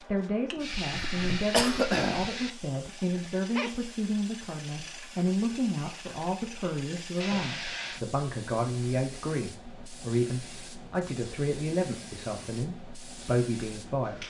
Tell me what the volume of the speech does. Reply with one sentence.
The volume of the speech stays about the same.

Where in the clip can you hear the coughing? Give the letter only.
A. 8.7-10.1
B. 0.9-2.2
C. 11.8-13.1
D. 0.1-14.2
B.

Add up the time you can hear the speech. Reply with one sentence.
The speech can be heard for 14 seconds in total.